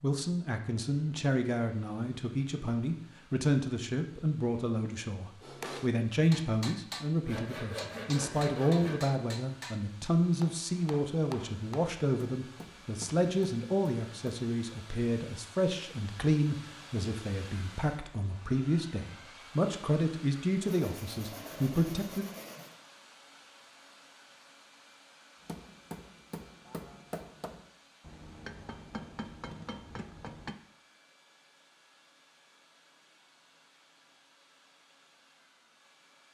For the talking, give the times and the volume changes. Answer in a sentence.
The talking can be heard from 0.0 to 22.2 s, at a steady volume.